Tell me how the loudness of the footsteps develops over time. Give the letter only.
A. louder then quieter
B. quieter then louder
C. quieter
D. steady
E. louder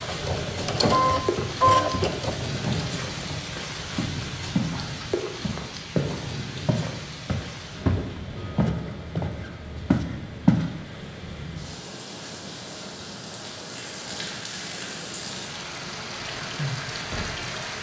E.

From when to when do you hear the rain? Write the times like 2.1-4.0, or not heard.
0.0-17.7.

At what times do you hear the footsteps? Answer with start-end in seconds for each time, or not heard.
1.4-4.8, 5.4-10.7.